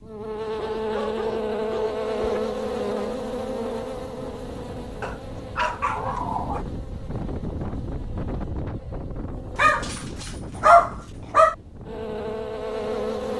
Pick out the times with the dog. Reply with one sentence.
The dog can be heard from 0.6 to 2.4 s, from 5.0 to 6.7 s and from 9.6 to 11.6 s.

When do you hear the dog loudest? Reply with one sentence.
The loudest moment of the dog is at 11 seconds.